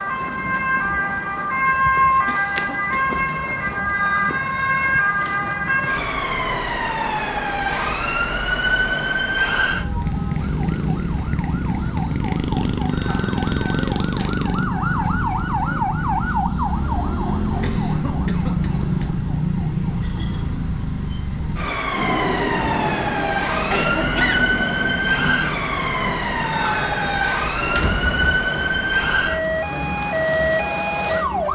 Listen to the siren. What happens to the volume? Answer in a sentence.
The loudness of the siren stays about the same.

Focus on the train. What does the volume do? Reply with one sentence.
The loudness of the train goes down.